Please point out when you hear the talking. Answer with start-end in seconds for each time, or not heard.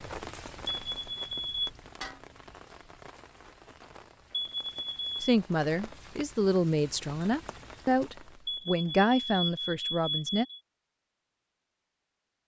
5.2-10.4.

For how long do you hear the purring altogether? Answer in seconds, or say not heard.
not heard.